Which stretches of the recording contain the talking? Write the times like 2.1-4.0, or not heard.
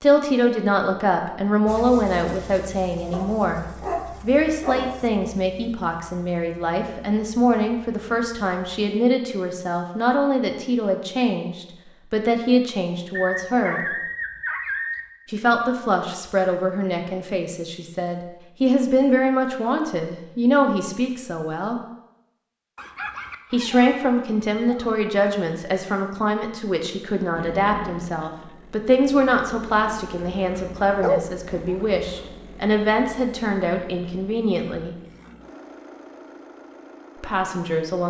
0.0-13.8, 15.2-21.8, 23.5-35.0, 37.2-38.0.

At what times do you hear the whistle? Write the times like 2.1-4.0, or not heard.
not heard.